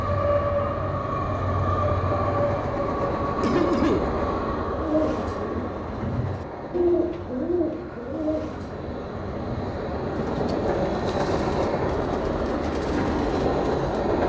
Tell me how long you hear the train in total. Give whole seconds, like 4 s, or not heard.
14 s.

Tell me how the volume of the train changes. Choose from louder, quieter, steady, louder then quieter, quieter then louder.
quieter then louder.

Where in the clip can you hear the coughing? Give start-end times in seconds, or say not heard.
3.4-4.1.